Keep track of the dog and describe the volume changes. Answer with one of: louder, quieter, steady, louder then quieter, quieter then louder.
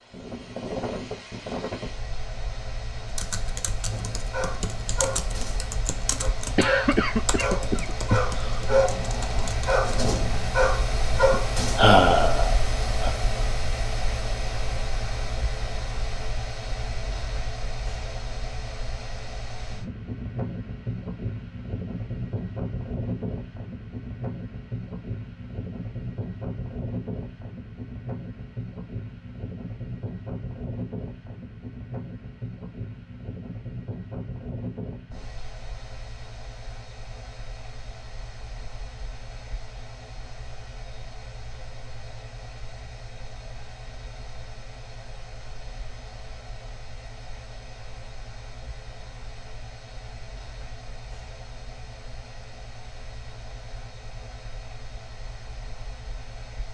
louder.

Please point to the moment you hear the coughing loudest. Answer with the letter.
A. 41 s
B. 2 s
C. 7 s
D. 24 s
C.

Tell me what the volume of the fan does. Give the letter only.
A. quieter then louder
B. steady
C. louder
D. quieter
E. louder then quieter
D.